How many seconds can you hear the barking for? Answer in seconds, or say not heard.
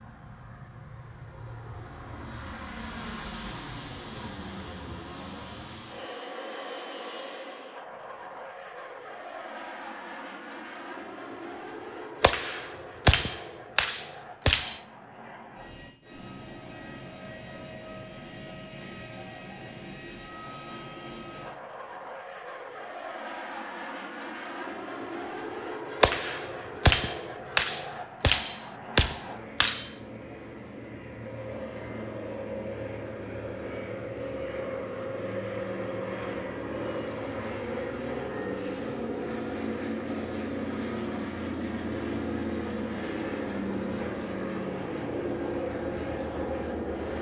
not heard.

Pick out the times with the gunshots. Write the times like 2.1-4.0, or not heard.
12.2-14.8, 26.0-29.9.